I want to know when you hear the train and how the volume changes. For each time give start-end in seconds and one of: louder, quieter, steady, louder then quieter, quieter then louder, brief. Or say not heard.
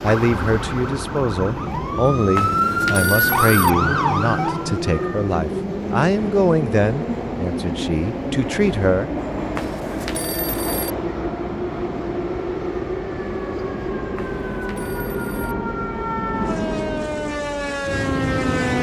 0.0-18.7 steady.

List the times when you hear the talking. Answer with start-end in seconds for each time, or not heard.
0.0-9.1.